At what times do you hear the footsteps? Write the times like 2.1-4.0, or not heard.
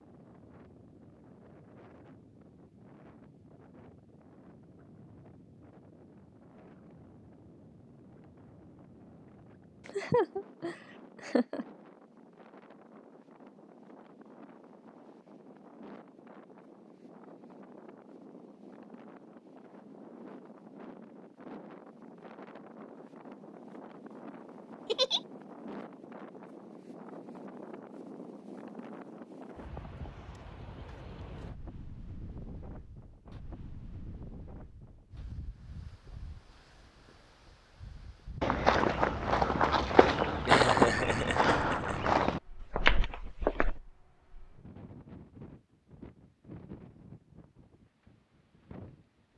38.4-43.8.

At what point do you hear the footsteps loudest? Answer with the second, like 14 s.
41 s.